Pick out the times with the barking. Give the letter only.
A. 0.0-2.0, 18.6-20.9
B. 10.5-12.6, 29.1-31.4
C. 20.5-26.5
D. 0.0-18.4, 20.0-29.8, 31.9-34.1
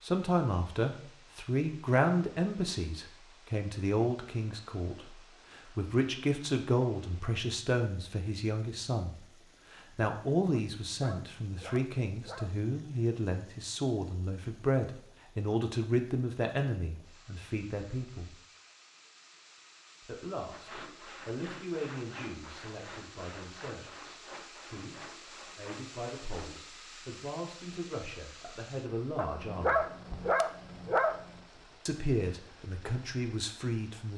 B.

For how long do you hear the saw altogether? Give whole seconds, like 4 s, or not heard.
6 s.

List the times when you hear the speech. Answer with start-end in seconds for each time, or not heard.
0.0-18.4, 20.0-29.8, 31.9-34.1.